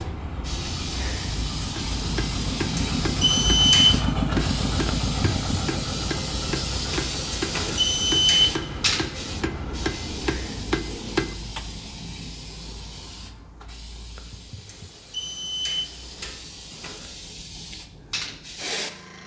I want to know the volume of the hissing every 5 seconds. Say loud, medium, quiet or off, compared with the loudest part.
loud, loud, medium, medium.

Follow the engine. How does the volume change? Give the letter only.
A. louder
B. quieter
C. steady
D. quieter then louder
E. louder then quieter
E.